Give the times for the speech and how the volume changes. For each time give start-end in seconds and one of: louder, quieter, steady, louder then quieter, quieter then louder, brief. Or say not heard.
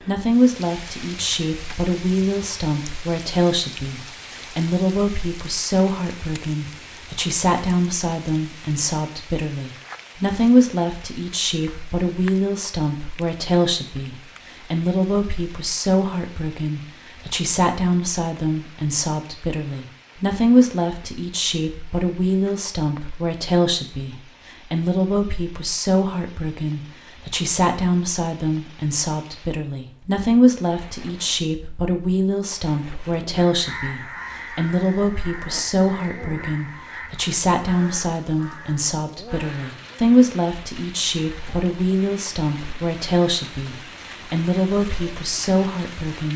0.0-46.3 steady.